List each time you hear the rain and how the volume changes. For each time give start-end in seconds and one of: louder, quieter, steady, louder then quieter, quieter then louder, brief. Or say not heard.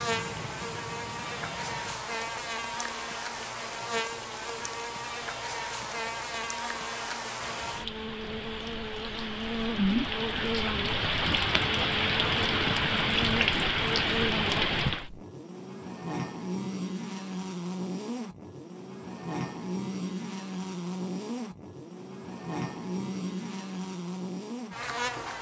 0.0-15.1 louder.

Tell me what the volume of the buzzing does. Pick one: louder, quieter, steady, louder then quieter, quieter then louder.
steady.